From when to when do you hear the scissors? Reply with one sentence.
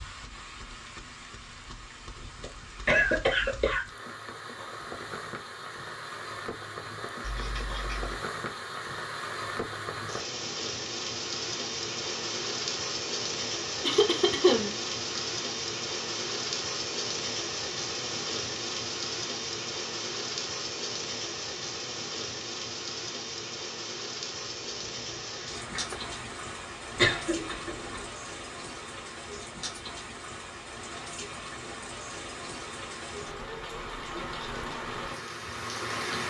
You can hear the scissors from 7.2 to 8.2 s and from 24.4 to 26.1 s.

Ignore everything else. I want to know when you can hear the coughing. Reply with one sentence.
The coughing can be heard from 2.4 to 3.9 s, from 13.8 to 15.2 s and from 26.9 to 28.1 s.